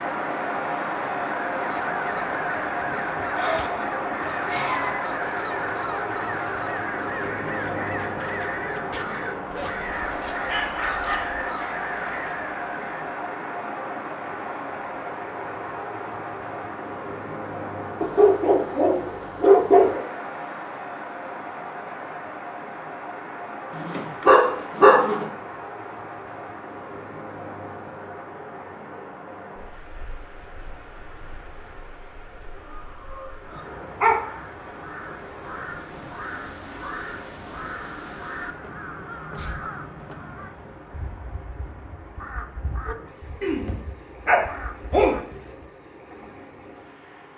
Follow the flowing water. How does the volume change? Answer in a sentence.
The volume of the flowing water goes down.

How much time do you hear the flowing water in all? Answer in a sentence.
The flowing water can be heard for 47 seconds in total.